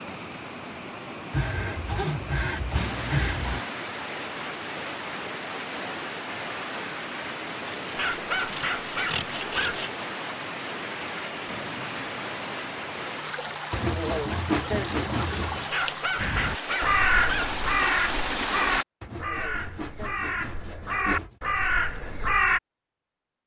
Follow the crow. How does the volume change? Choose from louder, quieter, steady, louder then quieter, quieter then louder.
quieter then louder.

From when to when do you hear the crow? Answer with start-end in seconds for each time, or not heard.
16.1-22.6.